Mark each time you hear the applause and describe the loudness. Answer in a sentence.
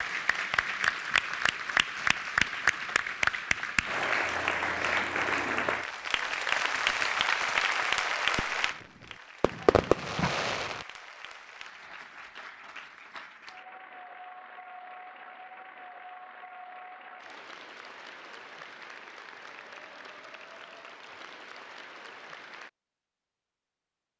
The applause can be heard from 0.0 to 22.7 s, getting quieter.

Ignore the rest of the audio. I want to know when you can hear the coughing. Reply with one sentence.
You can't hear the coughing here.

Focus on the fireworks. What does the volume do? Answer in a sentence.
The loudness of the fireworks goes down, then up.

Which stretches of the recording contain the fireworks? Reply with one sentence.
You can hear the fireworks from 6.3 to 10.8 s.